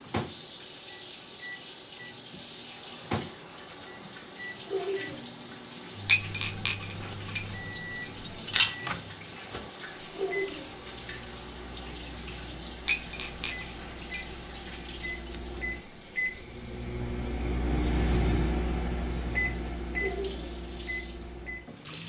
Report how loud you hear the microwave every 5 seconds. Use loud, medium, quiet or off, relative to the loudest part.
medium, medium, quiet, loud, medium.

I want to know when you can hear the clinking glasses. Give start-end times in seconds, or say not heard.
6.0-8.8, 12.8-15.4.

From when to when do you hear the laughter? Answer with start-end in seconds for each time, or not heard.
4.7-5.2, 10.2-10.7, 19.9-20.5.